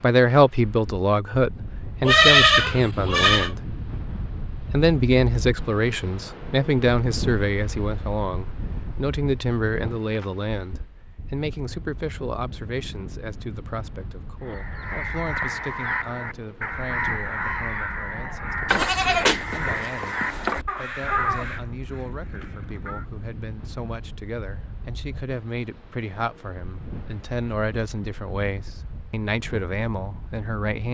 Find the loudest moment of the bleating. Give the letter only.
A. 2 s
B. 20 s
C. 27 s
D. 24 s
A.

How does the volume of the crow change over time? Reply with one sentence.
The loudness of the crow stays about the same.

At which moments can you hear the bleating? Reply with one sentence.
The bleating can be heard from 2.0 to 3.5 s and from 18.6 to 20.6 s.